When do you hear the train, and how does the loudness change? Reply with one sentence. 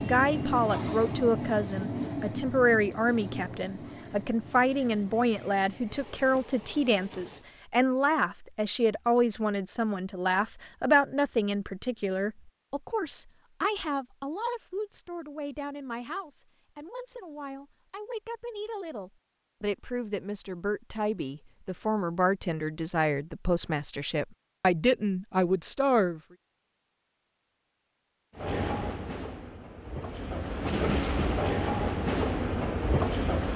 You can hear the train from 0.0 to 7.5 s, getting quieter; and from 28.4 to 33.5 s, getting louder.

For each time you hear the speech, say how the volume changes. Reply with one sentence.
The speech can be heard from 0.0 to 26.2 s, getting quieter then louder.